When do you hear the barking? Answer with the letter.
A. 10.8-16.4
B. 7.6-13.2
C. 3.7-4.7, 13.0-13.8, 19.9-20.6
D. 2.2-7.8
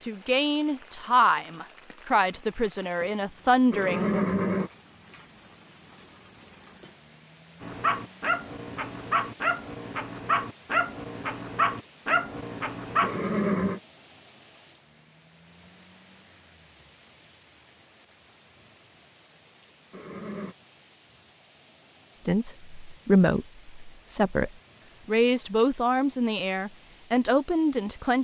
B.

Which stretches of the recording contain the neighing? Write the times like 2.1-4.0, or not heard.
3.7-4.7, 13.0-13.8, 19.9-20.6.